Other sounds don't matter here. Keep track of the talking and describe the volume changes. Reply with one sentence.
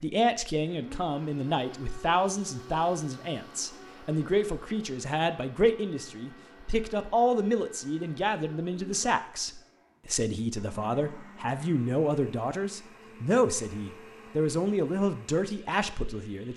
The loudness of the talking stays about the same.